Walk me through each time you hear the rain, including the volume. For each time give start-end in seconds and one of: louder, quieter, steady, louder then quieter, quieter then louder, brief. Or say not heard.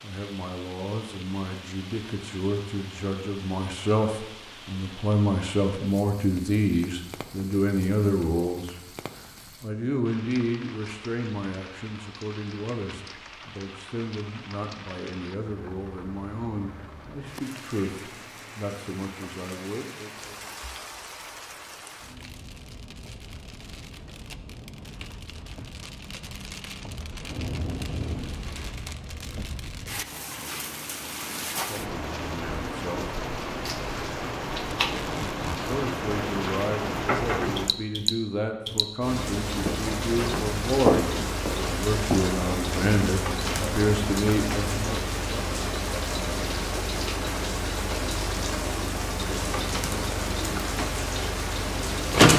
0.0-52.3 louder.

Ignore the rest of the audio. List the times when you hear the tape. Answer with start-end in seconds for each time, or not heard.
34.8-35.8.